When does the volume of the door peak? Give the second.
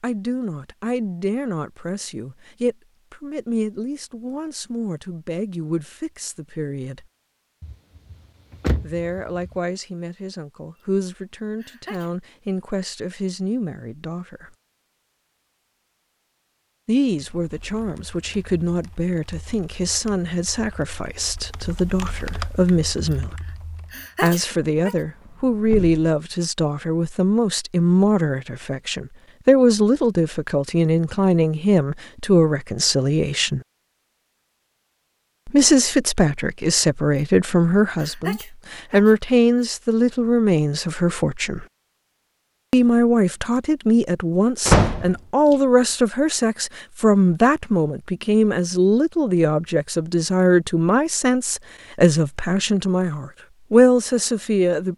45 s.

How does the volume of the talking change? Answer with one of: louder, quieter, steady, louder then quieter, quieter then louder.
louder.